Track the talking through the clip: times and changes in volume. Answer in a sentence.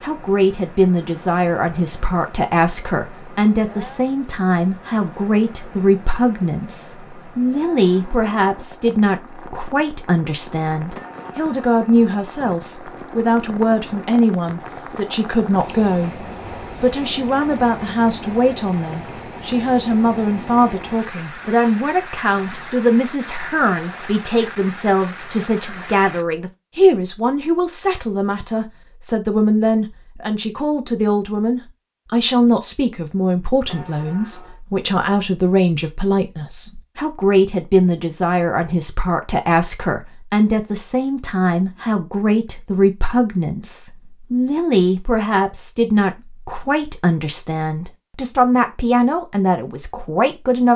The talking can be heard from 0.0 to 50.7 s, at a steady volume.